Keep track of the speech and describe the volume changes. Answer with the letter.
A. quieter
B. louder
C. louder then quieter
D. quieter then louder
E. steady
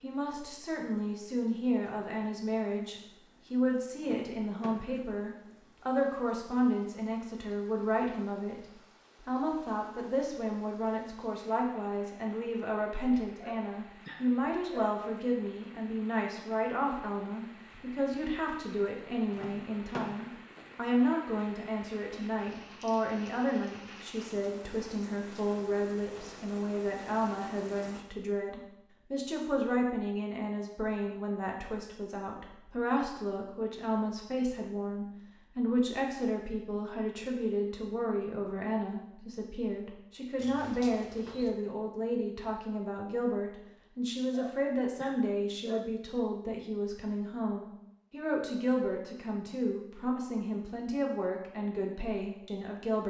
E.